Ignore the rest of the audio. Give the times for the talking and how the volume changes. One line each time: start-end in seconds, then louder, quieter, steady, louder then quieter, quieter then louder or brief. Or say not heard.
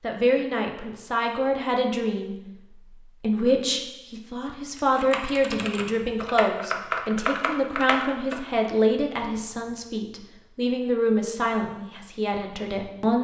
0.0-13.1 steady.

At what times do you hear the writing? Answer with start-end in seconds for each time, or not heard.
not heard.